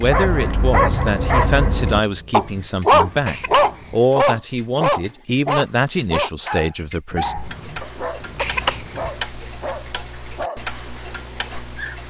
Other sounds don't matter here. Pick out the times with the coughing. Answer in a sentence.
The coughing can be heard from 1.9 to 4.0 s and from 7.1 to 9.1 s.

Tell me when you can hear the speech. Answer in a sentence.
The speech can be heard from 0.0 to 7.3 s.